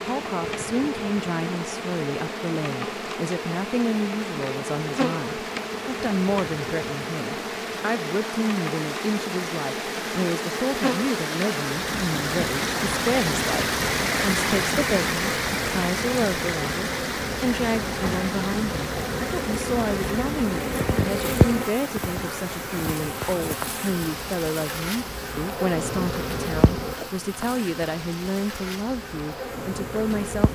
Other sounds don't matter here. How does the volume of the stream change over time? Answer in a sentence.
The loudness of the stream goes up, then down.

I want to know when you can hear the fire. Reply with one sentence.
You can't hear the fire here.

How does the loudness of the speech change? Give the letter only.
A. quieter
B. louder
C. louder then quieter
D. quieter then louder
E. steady
E.